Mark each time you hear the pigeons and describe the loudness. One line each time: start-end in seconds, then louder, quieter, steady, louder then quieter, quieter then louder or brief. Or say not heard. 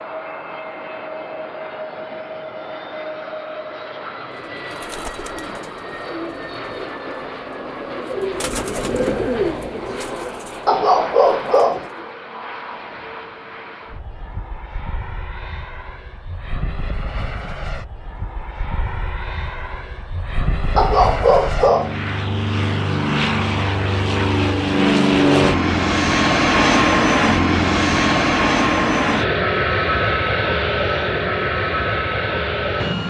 4.5-12.1 louder then quieter.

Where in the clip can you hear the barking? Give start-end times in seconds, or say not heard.
10.7-11.9, 20.8-21.9.